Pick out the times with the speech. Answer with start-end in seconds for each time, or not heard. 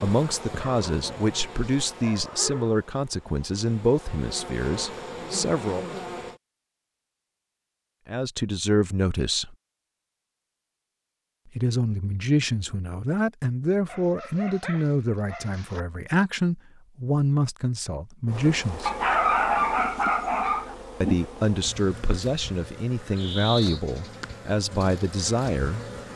0.0-5.8, 8.1-9.6, 11.6-18.9, 21.0-25.8.